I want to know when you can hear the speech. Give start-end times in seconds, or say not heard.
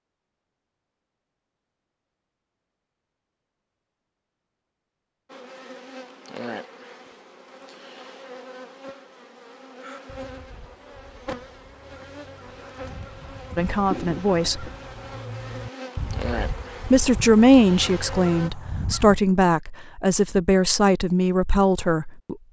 13.6-14.7, 16.9-22.4.